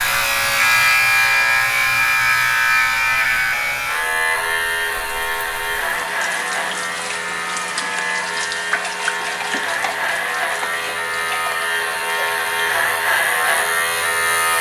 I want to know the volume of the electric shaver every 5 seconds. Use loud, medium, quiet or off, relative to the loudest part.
loud, medium, loud.